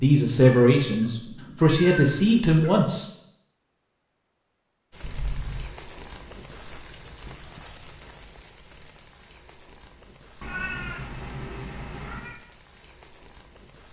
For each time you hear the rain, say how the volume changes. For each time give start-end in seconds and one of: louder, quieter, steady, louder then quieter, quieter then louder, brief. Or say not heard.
4.9-13.8 quieter.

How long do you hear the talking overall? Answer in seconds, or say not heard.
3 s.